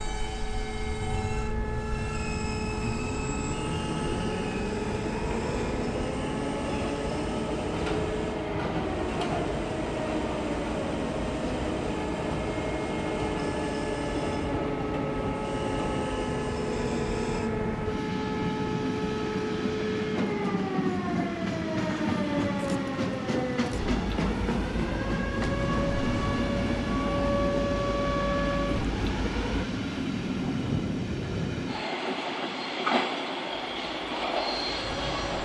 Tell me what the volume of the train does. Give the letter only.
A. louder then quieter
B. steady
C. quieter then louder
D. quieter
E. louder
B.